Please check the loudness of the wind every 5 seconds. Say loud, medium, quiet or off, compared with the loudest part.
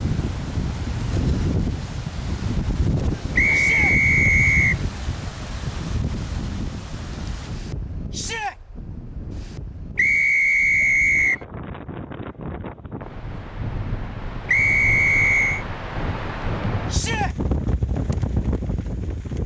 loud, medium, medium, loud.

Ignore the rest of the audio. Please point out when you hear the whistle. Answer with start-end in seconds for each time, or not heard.
3.4-4.8, 9.9-11.4, 14.4-15.7.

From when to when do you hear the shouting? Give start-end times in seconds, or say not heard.
3.5-4.0, 8.1-8.6, 16.9-17.4.